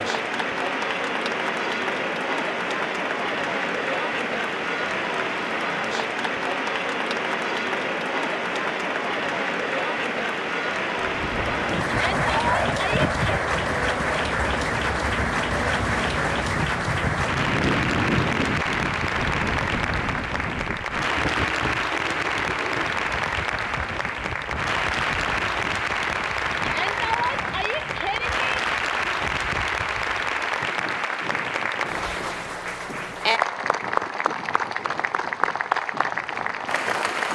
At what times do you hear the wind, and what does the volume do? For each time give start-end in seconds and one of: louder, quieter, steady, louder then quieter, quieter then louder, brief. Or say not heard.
10.9-37.3 quieter.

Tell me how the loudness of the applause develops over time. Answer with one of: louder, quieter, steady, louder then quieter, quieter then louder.
steady.